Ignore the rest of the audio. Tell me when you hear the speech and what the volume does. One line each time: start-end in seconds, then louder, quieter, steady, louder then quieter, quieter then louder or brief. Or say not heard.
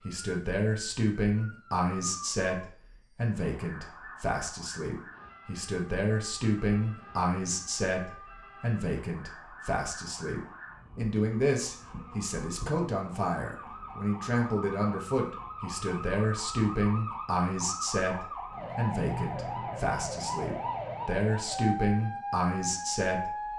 0.1-23.4 steady.